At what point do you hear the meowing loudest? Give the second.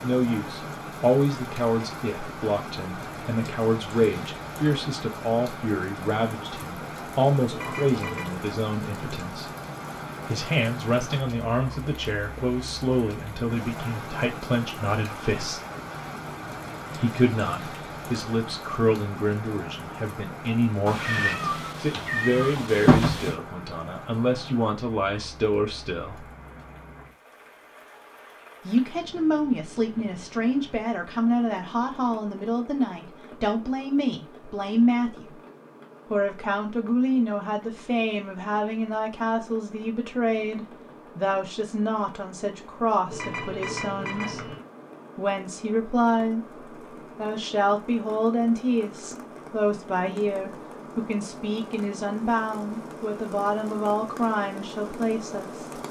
23 s.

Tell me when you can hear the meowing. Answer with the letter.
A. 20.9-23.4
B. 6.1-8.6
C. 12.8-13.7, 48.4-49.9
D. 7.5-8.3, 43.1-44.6
A.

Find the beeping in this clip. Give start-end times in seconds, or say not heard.
7.5-8.3, 43.1-44.6.